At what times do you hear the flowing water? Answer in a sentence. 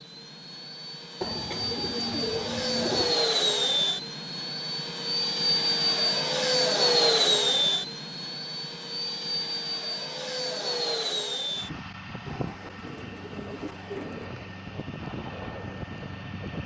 The flowing water can't be heard in this clip.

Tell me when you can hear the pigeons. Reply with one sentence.
The pigeons can be heard from 1.2 to 3.2 s and from 12.2 to 14.2 s.